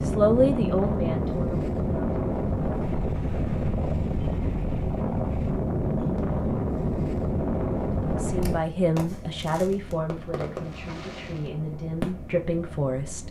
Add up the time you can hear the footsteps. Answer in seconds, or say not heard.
not heard.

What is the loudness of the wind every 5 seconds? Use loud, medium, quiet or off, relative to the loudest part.
loud, loud, quiet.